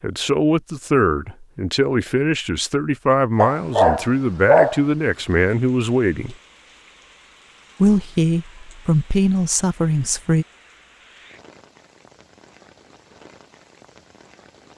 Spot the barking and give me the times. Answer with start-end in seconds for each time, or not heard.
3.4-4.8.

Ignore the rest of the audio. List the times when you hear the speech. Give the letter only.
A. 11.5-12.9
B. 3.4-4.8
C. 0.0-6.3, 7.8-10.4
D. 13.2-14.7
C.